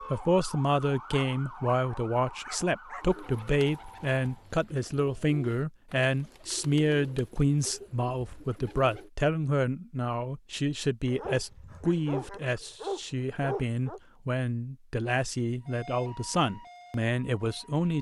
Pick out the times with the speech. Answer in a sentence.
You can hear the speech from 0.0 to 17.9 s.